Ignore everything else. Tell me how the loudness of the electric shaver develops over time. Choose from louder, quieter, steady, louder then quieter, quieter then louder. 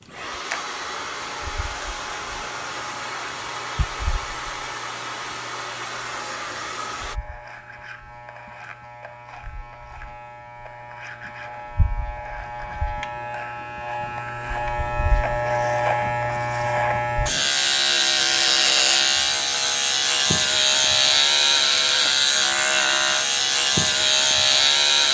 louder.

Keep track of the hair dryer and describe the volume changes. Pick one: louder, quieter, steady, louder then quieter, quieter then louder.
steady.